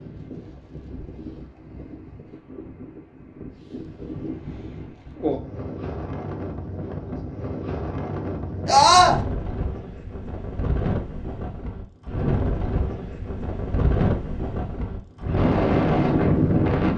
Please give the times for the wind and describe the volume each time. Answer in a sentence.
The wind can be heard from 0.0 to 16.9 s, getting louder.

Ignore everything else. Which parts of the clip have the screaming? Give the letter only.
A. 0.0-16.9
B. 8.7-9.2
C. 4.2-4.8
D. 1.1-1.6
B.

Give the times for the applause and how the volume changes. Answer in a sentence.
You can't hear the applause here.